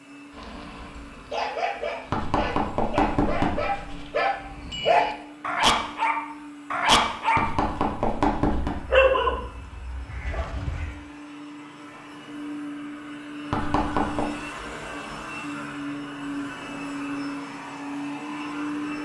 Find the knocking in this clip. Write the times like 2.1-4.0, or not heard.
2.1-4.0, 7.3-8.8, 13.5-14.2.